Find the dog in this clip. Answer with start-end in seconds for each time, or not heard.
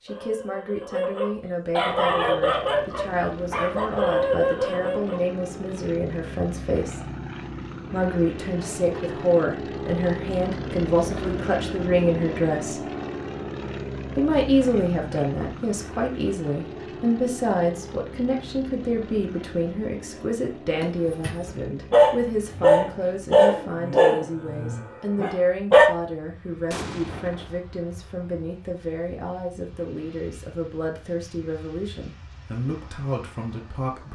0.1-5.2, 20.8-25.9.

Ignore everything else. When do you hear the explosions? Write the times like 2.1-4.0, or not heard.
26.7-27.6.